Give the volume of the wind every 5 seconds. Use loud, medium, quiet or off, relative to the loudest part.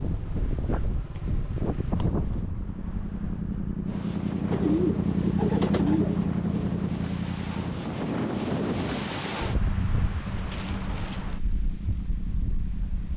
loud, loud, medium.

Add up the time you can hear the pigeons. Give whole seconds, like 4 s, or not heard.
2 s.